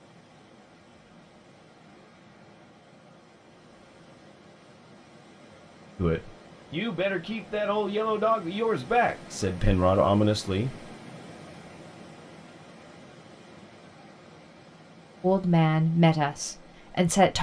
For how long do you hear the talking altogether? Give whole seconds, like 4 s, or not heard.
7 s.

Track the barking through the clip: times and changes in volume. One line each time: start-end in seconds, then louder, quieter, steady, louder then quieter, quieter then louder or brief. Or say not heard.
not heard.